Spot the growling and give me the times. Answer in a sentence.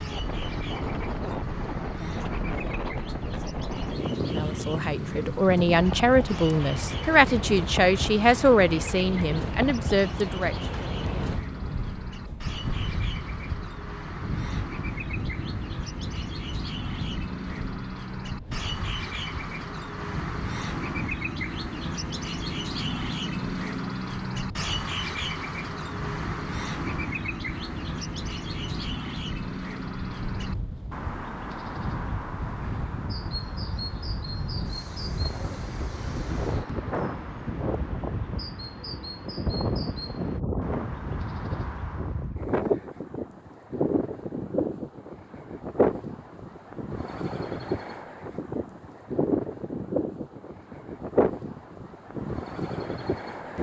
The growling can't be heard in this clip.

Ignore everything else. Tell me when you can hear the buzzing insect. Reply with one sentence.
You can't hear the buzzing insect here.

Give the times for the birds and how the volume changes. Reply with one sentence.
You can hear the birds from 0.0 to 42.4 s, getting louder then quieter.